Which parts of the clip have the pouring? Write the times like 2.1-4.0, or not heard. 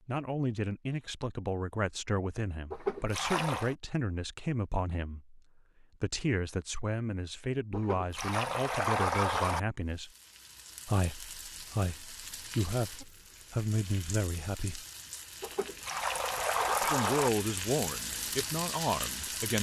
2.7-3.8, 7.7-9.6, 15.4-17.3.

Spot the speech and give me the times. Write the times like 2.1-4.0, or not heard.
0.1-10.1, 10.8-14.8, 16.8-19.5.